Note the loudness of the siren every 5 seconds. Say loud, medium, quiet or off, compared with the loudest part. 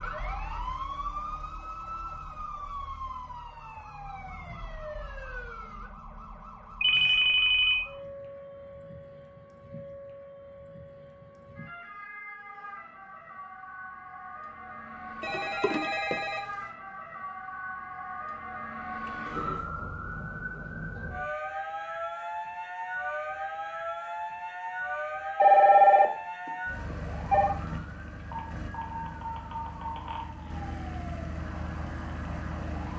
loud, medium, medium, loud, loud, loud, loud.